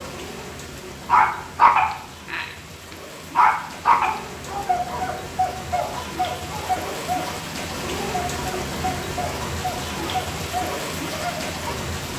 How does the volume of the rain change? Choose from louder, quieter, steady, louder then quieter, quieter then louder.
louder.